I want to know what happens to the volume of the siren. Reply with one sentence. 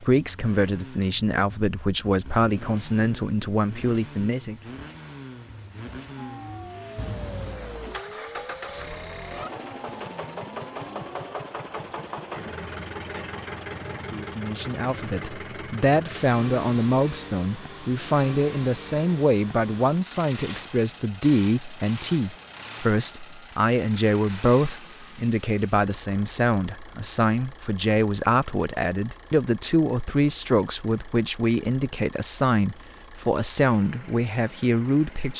The loudness of the siren stays about the same.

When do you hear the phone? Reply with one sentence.
You can hear the phone from 7.0 to 8.0 s.